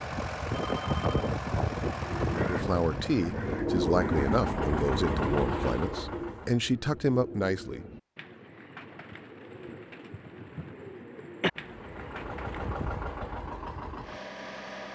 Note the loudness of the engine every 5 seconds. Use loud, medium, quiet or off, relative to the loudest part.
loud, loud, medium.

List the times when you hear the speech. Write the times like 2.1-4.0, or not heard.
2.4-7.8.